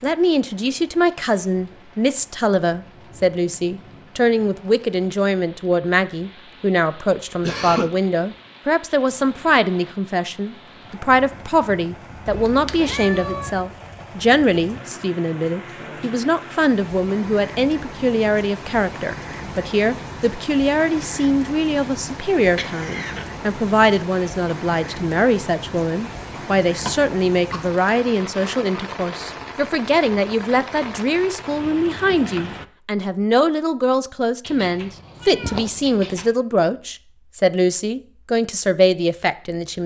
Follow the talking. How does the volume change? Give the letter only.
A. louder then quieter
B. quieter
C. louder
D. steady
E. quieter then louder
D.